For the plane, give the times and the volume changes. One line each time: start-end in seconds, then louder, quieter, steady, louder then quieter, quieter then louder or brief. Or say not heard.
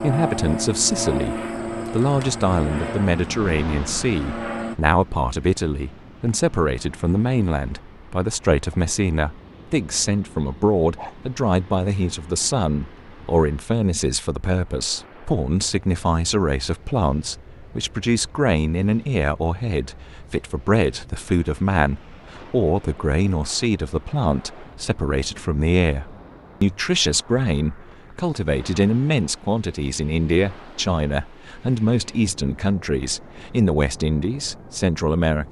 0.0-4.8 quieter.